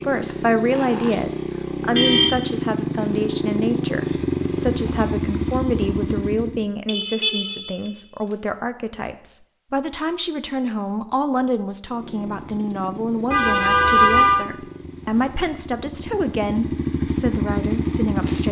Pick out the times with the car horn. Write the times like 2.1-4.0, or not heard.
1.9-2.5, 6.8-7.9, 13.3-14.4.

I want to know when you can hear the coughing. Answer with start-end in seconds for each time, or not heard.
not heard.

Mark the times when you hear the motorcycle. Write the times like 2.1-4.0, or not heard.
0.0-6.7, 11.8-18.4.